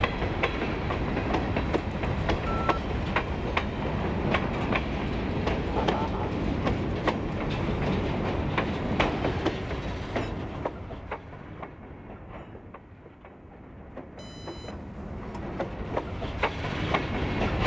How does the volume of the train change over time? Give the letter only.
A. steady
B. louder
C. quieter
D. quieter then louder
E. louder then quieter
D.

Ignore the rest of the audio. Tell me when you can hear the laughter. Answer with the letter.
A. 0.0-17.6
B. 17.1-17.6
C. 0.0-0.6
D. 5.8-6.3
D.